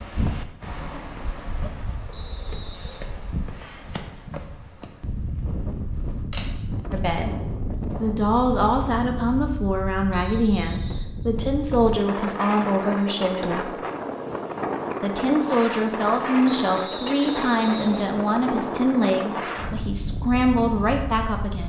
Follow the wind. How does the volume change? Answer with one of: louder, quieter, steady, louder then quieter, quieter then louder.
louder.